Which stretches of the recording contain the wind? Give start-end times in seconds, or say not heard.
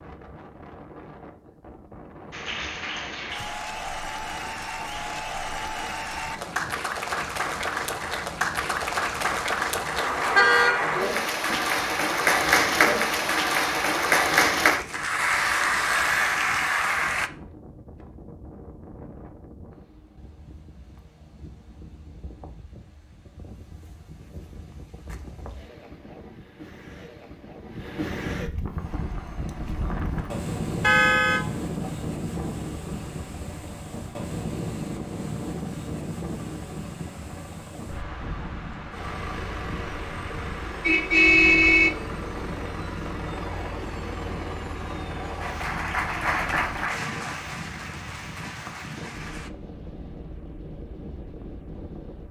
0.0-52.2.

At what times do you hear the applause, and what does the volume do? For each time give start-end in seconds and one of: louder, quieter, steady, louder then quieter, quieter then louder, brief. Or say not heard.
2.3-17.3 louder
45.4-49.5 quieter.